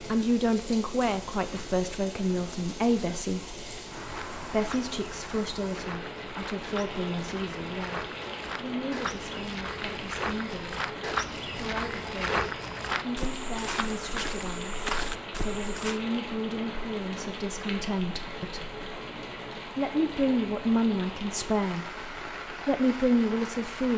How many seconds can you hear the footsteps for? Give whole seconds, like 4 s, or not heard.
12 s.